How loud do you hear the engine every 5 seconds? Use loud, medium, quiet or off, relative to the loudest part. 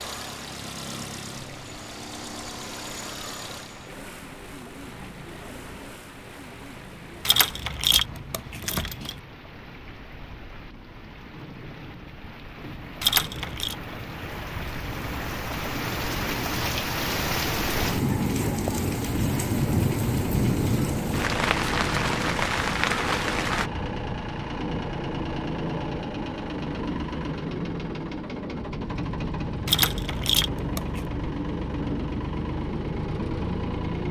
medium, quiet, quiet, medium, loud, loud, loud.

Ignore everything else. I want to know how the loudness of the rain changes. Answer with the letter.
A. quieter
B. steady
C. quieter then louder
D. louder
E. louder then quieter
D.